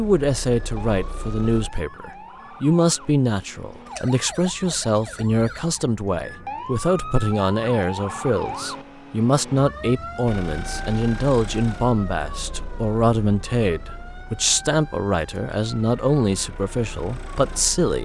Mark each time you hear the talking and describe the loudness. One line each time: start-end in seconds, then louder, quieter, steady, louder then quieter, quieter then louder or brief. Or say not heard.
0.0-18.0 steady.